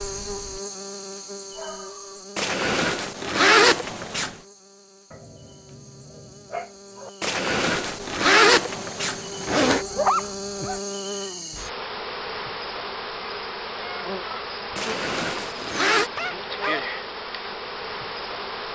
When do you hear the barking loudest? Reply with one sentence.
The loudest moment of the barking is at 10 seconds.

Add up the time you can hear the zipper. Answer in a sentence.
The zipper can be heard for 6 seconds in total.